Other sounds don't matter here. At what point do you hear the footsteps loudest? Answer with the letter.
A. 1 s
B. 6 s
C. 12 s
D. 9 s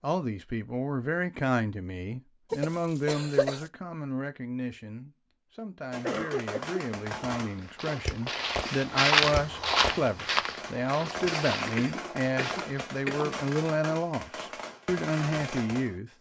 D.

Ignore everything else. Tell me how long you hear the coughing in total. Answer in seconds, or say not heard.
4 s.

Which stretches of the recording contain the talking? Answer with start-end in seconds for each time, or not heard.
0.0-16.1.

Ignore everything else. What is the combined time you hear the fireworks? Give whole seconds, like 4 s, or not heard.
10 s.